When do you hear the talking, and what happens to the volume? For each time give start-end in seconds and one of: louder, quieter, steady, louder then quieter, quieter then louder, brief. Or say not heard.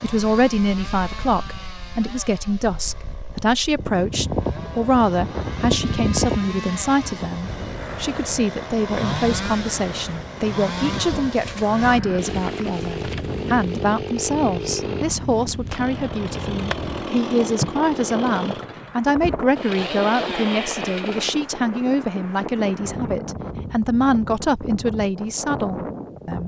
0.0-26.4 steady.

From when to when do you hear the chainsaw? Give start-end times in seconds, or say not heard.
0.0-21.5.